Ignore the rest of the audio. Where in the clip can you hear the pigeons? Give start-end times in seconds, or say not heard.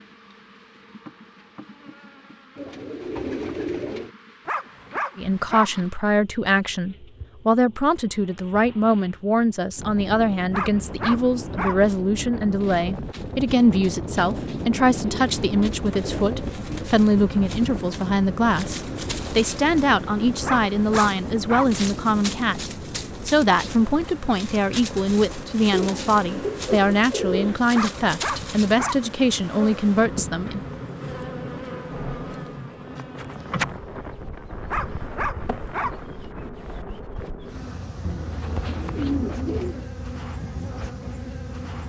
2.5-4.1, 14.8-16.9, 25.7-27.6, 38.0-39.9.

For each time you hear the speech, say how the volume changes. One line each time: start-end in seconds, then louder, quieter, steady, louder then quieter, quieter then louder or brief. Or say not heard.
5.2-30.6 steady.